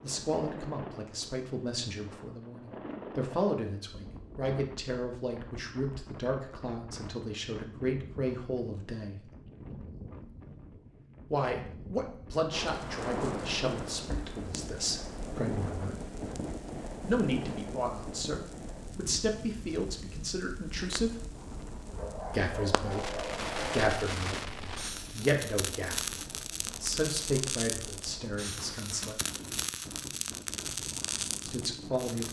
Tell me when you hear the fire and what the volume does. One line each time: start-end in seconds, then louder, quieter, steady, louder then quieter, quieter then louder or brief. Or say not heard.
12.5-32.2 quieter then louder.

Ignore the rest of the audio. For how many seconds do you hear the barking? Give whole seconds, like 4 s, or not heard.
2 s.